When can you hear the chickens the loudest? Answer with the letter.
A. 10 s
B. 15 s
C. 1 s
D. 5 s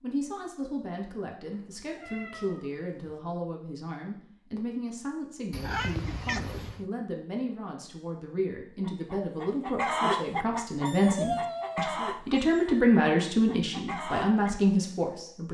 A.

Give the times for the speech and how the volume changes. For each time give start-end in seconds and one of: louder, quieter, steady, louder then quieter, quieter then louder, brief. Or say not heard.
0.0-15.4 louder.